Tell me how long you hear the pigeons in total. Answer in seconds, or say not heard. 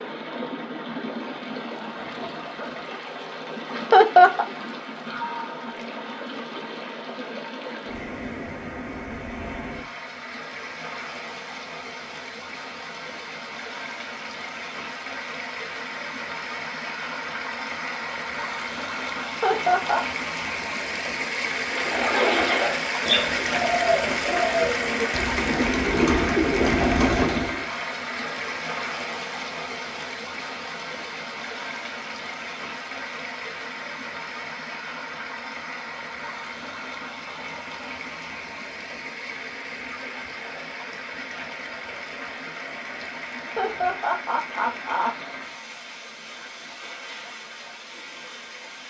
6 s.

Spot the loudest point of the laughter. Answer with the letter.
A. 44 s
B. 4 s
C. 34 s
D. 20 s
B.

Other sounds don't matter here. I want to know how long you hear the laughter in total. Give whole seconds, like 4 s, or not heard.
3 s.